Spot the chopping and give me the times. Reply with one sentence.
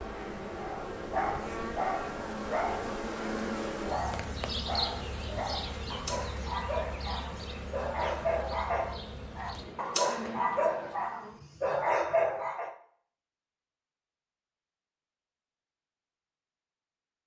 You can't hear the chopping here.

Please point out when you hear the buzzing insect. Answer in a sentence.
The buzzing insect can be heard from 0.0 to 11.4 s.